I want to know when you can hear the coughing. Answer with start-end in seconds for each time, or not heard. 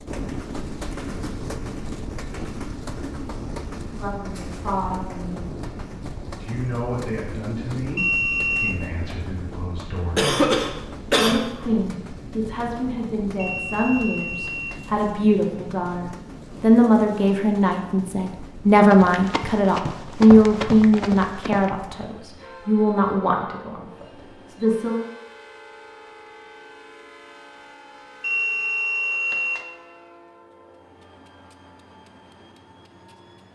10.2-11.4.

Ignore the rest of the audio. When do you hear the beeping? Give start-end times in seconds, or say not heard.
8.0-8.8, 13.3-14.8, 28.2-29.6.